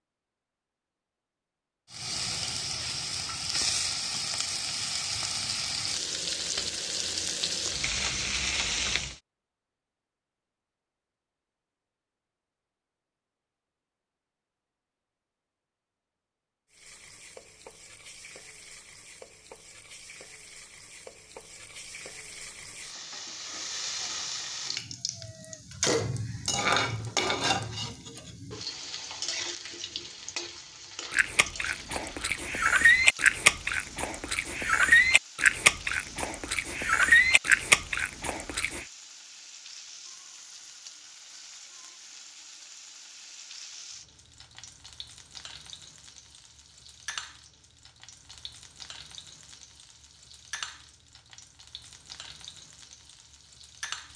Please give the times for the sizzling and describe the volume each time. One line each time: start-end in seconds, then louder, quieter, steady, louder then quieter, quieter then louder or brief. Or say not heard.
1.9-9.2 steady
16.7-54.1 louder then quieter.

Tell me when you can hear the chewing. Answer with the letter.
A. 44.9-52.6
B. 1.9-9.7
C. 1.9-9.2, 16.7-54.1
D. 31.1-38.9
D.